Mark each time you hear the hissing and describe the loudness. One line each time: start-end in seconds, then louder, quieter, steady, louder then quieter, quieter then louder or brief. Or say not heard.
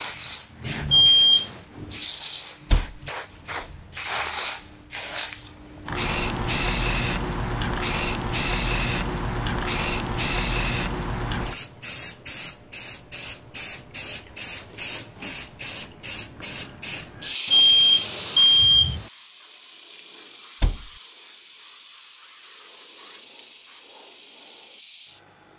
0.0-25.5 louder then quieter.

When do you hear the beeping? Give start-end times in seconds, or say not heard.
0.9-1.6, 17.5-19.1.